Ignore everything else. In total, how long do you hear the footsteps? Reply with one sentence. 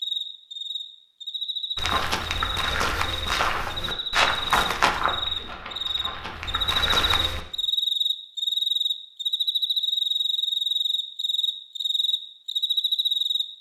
You can hear the footsteps for 6 seconds altogether.